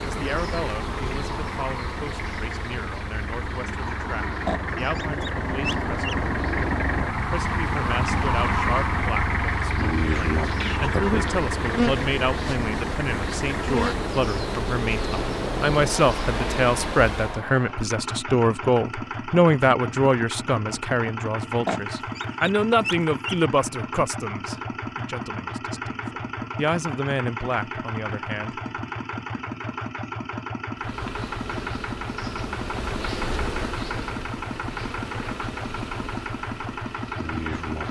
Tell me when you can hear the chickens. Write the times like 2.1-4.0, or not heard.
4.5-6.2, 21.6-23.4.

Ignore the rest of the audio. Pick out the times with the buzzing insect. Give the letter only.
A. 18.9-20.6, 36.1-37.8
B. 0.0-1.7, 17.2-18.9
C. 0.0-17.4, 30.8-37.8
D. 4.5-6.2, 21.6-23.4
C.